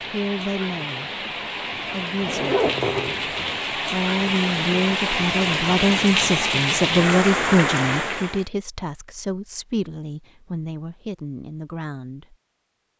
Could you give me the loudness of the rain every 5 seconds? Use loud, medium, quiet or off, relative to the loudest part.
medium, loud, off.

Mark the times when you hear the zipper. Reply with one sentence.
You can hear the zipper from 2.2 to 3.5 s.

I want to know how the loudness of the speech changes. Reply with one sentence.
The loudness of the speech goes up, then down.